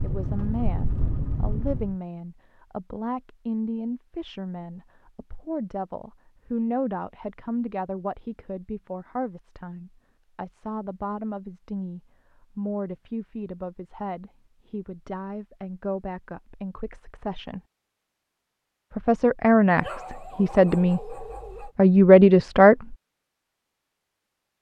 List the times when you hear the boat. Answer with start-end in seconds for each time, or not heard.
0.0-1.9.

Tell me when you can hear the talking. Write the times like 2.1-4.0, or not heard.
0.0-17.6, 18.9-22.9.